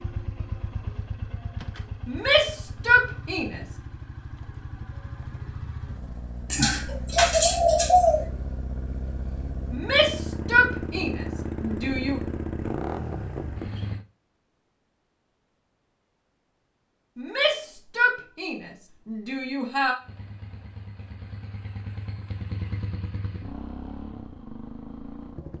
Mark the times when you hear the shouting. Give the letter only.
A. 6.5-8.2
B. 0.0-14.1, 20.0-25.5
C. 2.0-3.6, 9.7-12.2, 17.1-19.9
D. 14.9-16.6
C.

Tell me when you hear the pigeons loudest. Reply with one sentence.
The volume of the pigeons peaks at 8 seconds.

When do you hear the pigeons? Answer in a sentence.
You can hear the pigeons from 6.5 to 8.2 s.